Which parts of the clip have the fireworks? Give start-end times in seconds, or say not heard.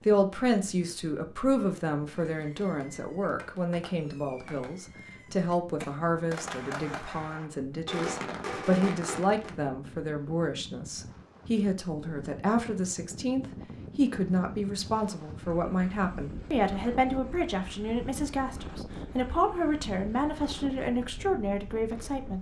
2.2-9.6.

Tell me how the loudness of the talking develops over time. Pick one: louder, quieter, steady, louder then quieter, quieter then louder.
steady.